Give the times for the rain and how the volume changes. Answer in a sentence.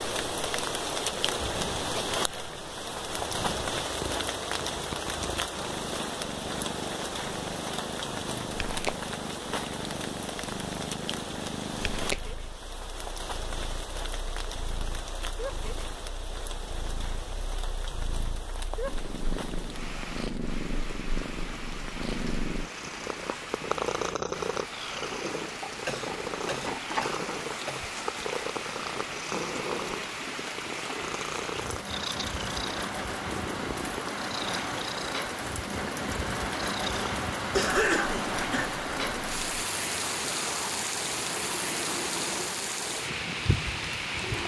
You can hear the rain from 0.0 to 44.4 s, getting quieter then louder.